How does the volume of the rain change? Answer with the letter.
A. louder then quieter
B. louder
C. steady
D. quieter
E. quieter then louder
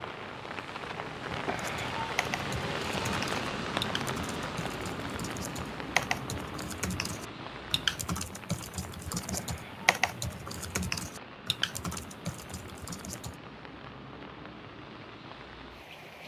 D.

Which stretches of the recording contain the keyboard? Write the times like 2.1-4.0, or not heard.
1.6-13.3.